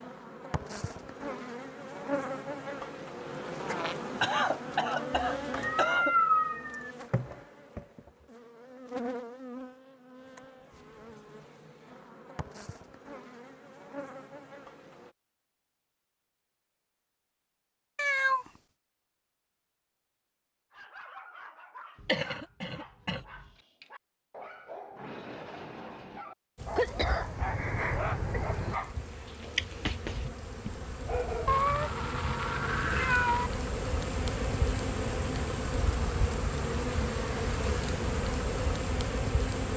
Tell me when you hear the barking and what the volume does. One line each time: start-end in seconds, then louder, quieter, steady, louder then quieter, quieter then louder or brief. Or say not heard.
20.7-31.6 louder.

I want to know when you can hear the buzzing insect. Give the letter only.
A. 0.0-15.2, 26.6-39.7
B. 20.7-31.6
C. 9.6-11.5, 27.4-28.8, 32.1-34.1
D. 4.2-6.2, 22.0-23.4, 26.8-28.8
A.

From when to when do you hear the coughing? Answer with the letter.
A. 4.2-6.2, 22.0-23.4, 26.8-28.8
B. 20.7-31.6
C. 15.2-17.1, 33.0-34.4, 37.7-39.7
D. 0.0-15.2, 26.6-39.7
A.